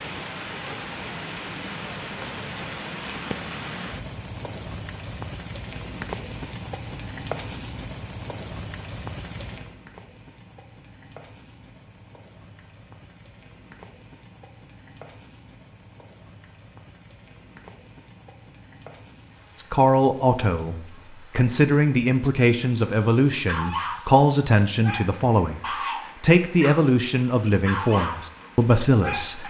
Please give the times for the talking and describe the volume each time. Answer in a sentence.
The talking can be heard from 19.6 to 29.4 s, at a steady volume.